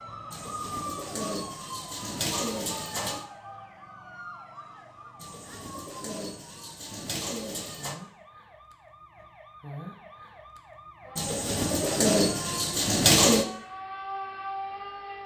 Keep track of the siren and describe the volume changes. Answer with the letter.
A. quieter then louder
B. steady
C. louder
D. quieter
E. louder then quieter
A.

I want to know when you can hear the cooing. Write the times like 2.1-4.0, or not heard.
0.3-3.2, 5.2-8.0, 11.2-13.4.